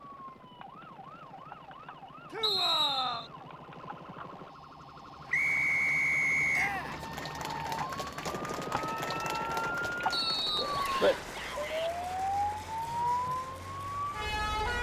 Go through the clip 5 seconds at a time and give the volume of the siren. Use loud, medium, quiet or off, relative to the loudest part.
quiet, medium, loud.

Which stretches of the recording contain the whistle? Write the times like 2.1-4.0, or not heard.
2.4-3.3, 5.3-6.7, 10.1-11.2.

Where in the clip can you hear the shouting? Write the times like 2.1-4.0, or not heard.
2.3-3.2, 6.5-7.0, 10.7-11.9.